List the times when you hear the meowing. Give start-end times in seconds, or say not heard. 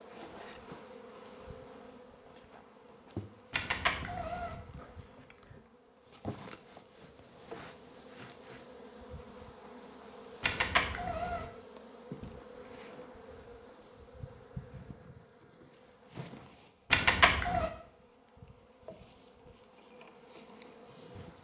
3.5-4.5, 10.4-11.4, 16.9-17.7.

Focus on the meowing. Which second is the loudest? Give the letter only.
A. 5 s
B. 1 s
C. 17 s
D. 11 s
C.